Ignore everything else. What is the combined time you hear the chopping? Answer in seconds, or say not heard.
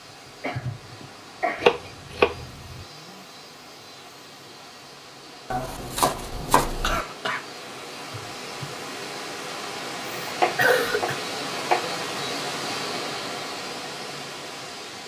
4 s.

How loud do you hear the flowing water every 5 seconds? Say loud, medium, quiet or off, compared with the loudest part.
medium, medium, loud.